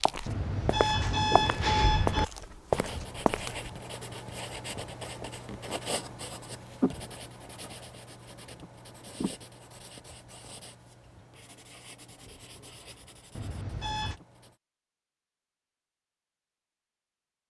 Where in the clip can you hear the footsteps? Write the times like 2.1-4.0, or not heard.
0.0-3.7.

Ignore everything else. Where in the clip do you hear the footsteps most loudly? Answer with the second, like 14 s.
3 s.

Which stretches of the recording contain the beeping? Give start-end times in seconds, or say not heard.
0.2-2.2, 13.3-14.2.